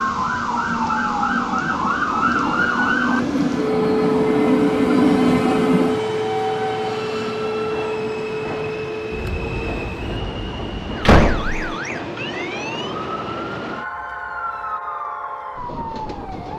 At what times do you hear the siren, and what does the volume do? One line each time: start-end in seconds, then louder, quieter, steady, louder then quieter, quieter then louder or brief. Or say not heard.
0.0-16.5 quieter.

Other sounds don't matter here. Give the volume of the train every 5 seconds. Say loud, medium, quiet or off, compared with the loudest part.
loud, loud, medium, medium.